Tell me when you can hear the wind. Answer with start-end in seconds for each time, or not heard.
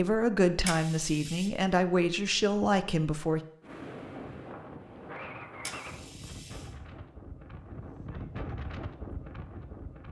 3.6-10.0.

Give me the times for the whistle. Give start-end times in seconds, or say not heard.
not heard.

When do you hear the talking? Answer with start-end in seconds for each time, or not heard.
0.0-3.4.